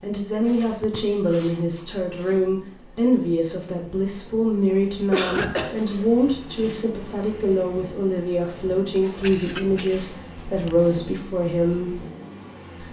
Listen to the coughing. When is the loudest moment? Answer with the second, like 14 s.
5 s.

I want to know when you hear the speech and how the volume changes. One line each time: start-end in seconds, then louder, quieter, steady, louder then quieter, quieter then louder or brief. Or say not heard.
0.0-12.0 steady.